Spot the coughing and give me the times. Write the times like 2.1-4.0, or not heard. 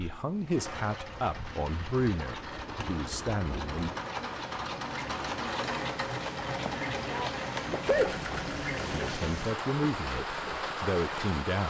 6.7-8.1.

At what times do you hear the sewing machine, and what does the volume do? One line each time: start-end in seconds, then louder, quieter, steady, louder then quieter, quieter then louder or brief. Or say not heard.
0.0-11.3 louder then quieter.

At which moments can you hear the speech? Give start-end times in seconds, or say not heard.
0.0-3.9, 8.9-11.6.